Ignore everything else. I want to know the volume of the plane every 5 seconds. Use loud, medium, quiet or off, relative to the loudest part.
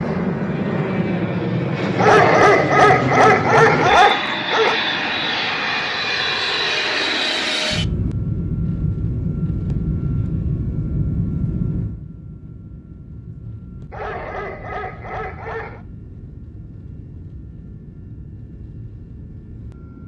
loud, loud, medium, quiet.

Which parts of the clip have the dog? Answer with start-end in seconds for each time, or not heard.
1.9-4.8, 13.9-15.8.